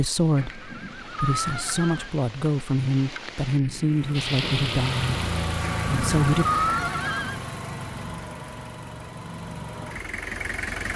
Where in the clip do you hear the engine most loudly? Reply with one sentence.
The volume of the engine peaks at 6 seconds.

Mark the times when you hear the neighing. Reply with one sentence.
The neighing can be heard from 0.3 to 2.1 s and from 5.6 to 7.4 s.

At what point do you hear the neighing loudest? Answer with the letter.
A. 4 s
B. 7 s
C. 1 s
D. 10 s
B.